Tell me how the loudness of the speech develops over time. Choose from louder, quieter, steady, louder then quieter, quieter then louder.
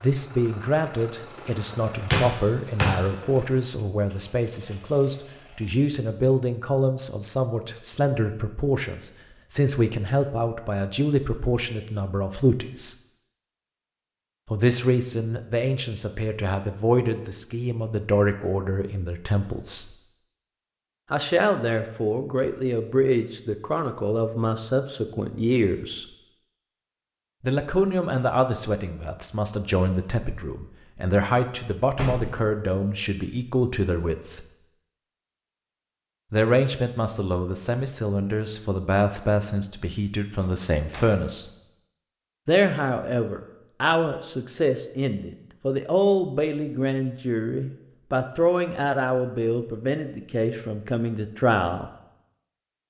steady.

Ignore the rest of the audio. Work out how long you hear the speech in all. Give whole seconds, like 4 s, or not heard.
45 s.